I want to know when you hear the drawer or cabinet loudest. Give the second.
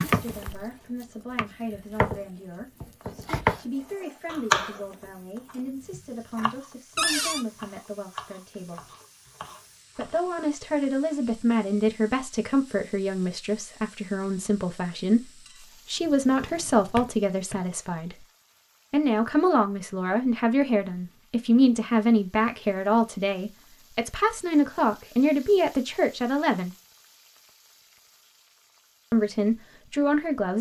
7 s.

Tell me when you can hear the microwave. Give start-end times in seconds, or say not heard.
not heard.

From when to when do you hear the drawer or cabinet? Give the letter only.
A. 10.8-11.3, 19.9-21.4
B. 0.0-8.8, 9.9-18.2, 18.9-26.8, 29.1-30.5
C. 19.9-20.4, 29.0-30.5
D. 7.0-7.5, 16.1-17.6
D.